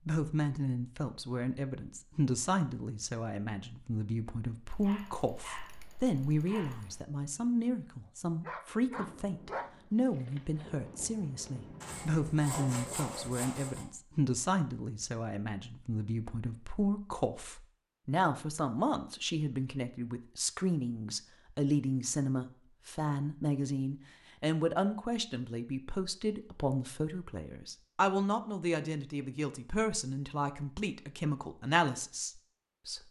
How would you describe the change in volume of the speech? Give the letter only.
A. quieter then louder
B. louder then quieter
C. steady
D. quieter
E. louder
C.